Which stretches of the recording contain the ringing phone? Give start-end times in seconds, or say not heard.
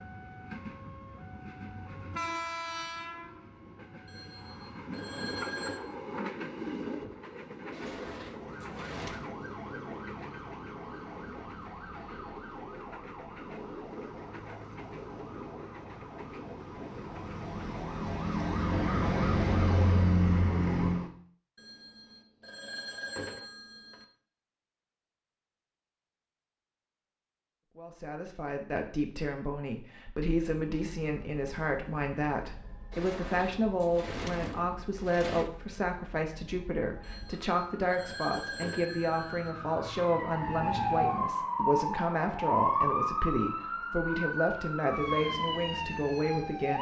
4.0-5.8, 21.6-24.1, 37.0-39.5.